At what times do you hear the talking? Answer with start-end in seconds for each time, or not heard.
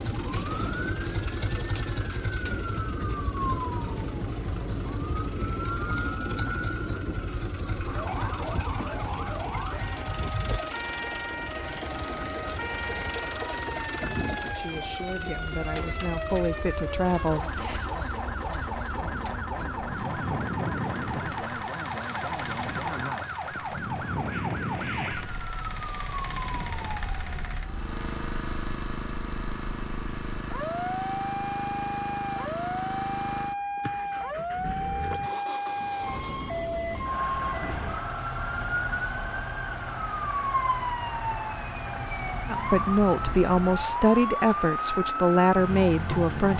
14.5-17.8, 42.5-46.5.